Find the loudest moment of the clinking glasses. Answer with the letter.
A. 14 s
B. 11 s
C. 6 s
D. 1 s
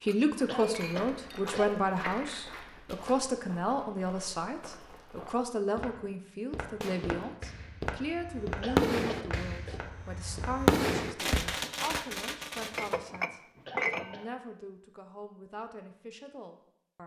A.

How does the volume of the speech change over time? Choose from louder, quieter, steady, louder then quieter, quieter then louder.
quieter.